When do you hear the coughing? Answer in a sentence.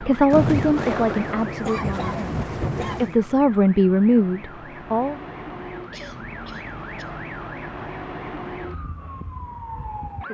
The coughing can be heard from 1.6 to 3.2 s and from 5.9 to 7.2 s.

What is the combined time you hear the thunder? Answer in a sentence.
The thunder can be heard for 3 seconds in total.